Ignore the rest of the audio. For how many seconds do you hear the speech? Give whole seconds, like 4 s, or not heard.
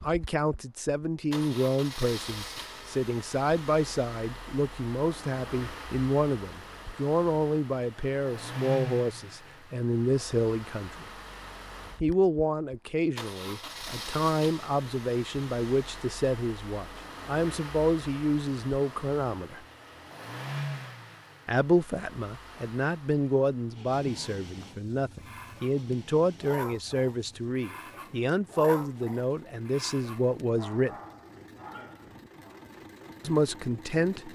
29 s.